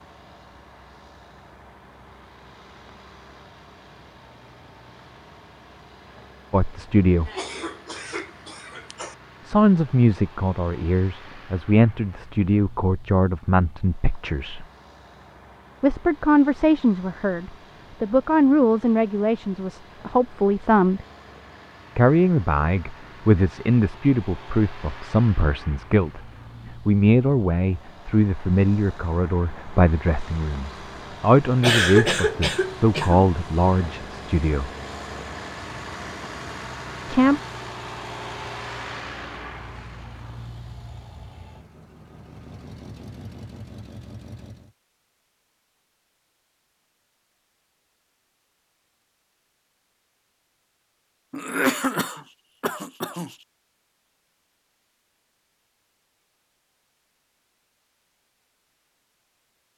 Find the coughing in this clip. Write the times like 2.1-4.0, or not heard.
7.2-9.2, 31.6-33.2, 51.3-53.4.